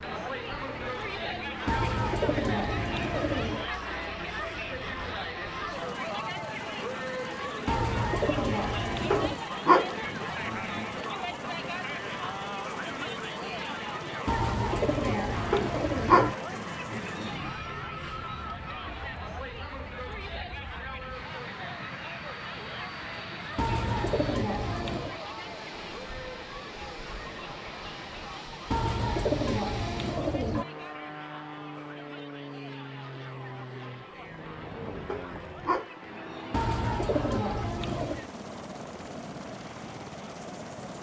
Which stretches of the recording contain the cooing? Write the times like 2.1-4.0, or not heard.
1.6-3.6, 7.7-9.4, 14.2-16.4, 23.6-25.2, 28.7-30.6, 36.5-38.2.